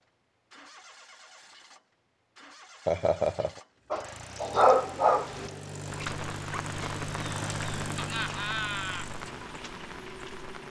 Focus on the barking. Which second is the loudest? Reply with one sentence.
The loudest moment of the barking is at 5 seconds.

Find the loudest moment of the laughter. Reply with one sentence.
The loudest moment of the laughter is at 3 seconds.